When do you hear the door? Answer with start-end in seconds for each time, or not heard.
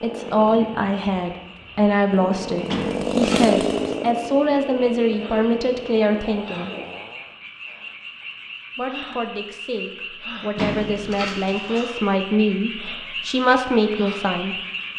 2.6-4.0, 10.6-11.9.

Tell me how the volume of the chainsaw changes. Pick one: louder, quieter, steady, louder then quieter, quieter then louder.
louder then quieter.